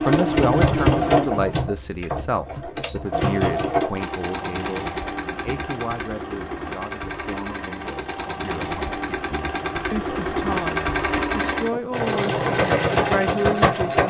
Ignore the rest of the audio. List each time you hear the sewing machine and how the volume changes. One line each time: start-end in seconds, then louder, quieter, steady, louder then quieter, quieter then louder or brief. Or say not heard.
0.0-14.0 quieter then louder.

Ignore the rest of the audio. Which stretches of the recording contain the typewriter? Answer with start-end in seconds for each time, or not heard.
not heard.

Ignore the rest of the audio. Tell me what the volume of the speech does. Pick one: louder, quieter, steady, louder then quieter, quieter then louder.
quieter then louder.